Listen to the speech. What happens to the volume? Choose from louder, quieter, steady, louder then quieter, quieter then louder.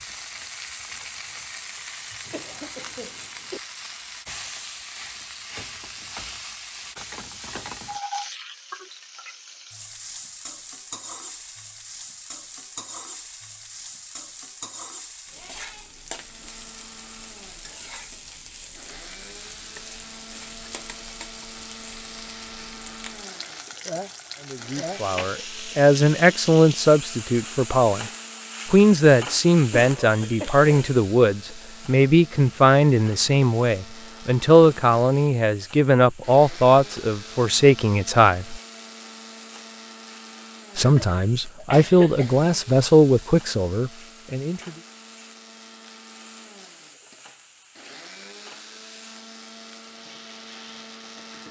steady.